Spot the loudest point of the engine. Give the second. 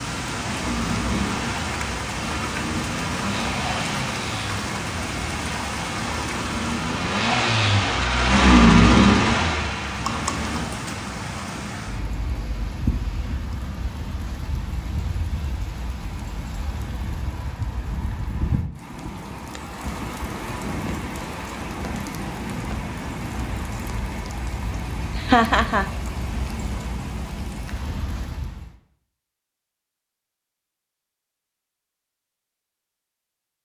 9 s.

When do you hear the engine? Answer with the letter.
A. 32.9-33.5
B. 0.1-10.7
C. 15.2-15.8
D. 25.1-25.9
B.